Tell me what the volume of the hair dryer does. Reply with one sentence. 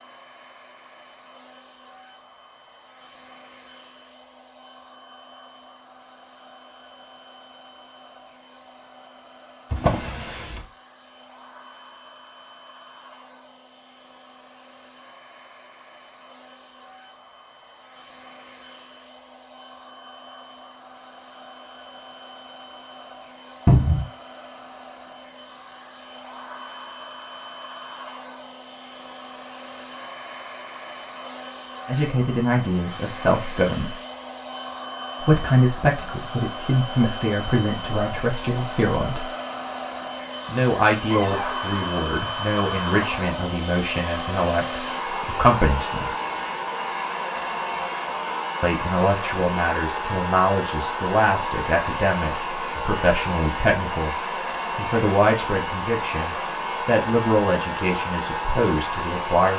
The loudness of the hair dryer goes up.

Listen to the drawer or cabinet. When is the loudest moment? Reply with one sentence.
The loudest moment of the drawer or cabinet is at 24 seconds.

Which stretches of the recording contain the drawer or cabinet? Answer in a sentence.
You can hear the drawer or cabinet from 9.7 to 10.7 s, from 23.6 to 24.1 s and from 41.1 to 41.6 s.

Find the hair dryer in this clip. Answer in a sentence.
The hair dryer can be heard from 0.0 to 59.5 s.